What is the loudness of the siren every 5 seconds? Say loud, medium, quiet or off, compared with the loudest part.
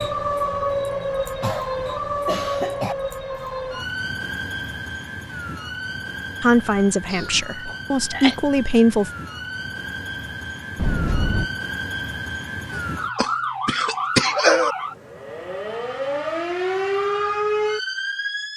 loud, medium, loud, loud.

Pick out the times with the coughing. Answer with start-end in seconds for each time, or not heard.
1.4-3.0, 7.1-8.3, 12.8-14.8.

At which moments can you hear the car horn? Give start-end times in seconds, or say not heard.
10.8-11.5.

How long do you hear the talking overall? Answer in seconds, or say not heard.
3 s.